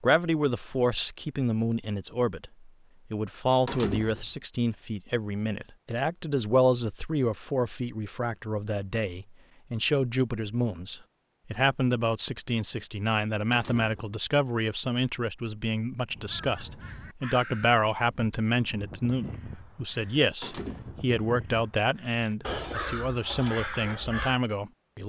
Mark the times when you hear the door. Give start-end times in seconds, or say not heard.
3.6-4.3, 13.5-14.2, 20.4-21.1.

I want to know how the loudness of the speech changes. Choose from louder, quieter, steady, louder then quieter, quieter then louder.
steady.